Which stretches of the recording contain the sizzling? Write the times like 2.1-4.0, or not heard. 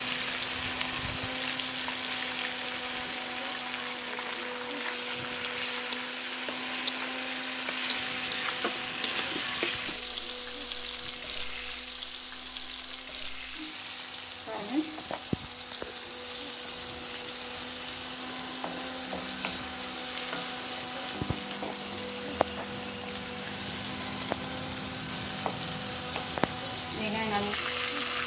0.0-28.2.